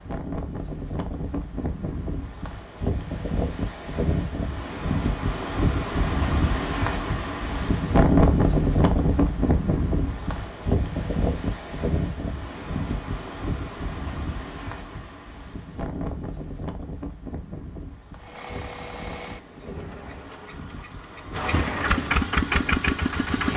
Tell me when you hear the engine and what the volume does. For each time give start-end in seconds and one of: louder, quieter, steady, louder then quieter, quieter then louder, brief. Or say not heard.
18.1-23.5 quieter then louder.